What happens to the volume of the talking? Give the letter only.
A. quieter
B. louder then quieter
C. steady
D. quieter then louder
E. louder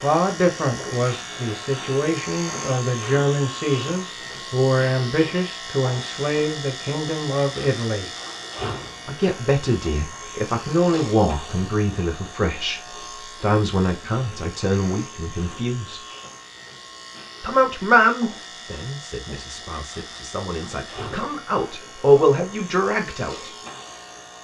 C.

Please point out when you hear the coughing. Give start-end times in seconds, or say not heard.
not heard.